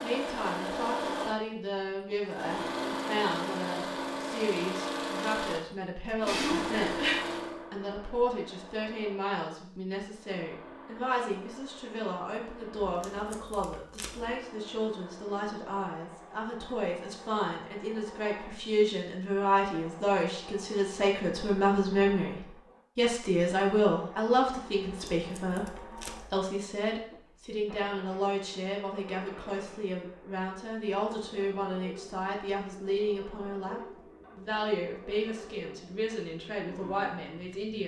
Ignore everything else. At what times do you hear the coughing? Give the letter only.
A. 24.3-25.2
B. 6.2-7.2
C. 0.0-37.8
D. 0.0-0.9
B.